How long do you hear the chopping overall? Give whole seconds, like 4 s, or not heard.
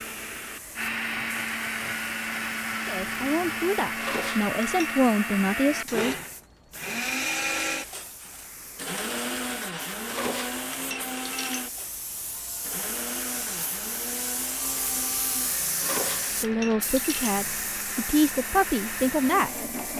not heard.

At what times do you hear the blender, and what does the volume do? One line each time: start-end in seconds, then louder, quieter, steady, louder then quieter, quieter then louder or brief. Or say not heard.
0.0-19.9 quieter.